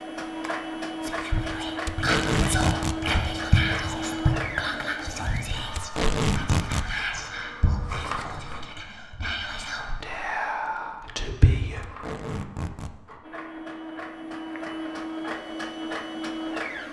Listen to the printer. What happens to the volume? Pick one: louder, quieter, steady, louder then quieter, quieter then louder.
quieter then louder.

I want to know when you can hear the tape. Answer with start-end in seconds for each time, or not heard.
1.9-3.0, 5.8-6.9, 11.8-12.9.